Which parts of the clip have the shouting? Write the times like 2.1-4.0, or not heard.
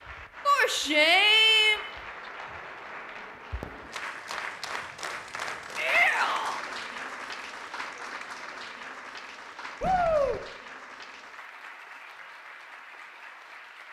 0.5-1.8, 5.8-6.6, 9.8-10.4.